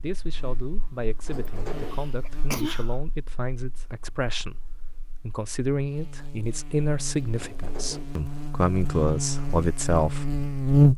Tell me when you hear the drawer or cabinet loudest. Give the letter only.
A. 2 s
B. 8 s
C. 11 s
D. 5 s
A.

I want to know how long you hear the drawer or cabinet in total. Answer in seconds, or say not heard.
2 s.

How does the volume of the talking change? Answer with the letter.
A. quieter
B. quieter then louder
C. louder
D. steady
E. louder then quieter
C.